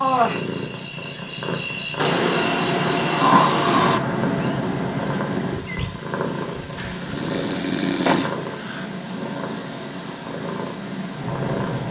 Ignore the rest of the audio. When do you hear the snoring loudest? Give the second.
3 s.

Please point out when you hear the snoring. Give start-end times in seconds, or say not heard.
1.9-4.0, 6.8-8.8.